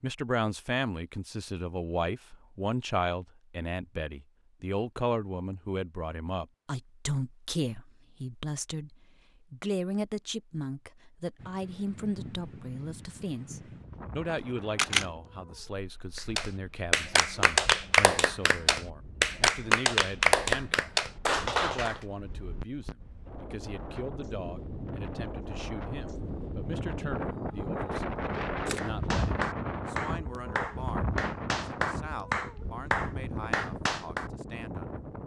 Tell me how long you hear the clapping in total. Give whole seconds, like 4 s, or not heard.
11 s.